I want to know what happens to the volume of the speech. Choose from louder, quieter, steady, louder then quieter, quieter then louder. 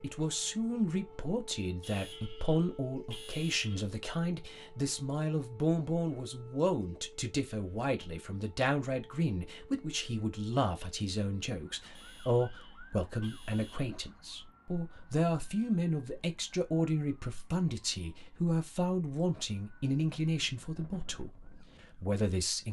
steady.